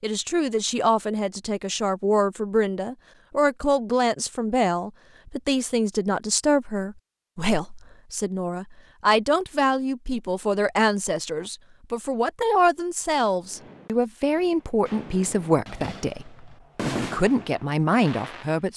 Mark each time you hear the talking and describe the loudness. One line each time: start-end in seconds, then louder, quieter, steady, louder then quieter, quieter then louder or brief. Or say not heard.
0.0-18.7 steady.